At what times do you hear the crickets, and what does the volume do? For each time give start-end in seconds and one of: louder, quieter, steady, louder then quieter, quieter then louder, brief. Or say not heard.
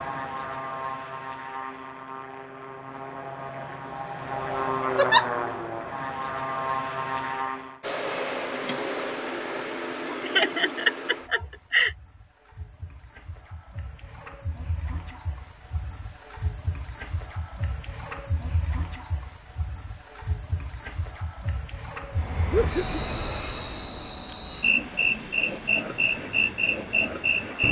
7.8-27.6 quieter then louder.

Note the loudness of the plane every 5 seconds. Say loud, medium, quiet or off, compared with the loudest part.
loud, loud, off, off, medium, quiet.